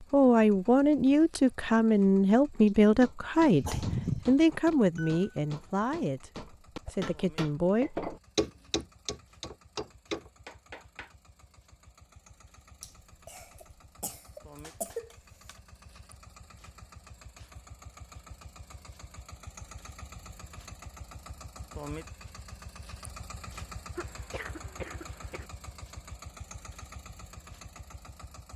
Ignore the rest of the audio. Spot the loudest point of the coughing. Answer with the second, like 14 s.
4 s.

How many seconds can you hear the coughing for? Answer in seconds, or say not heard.
5 s.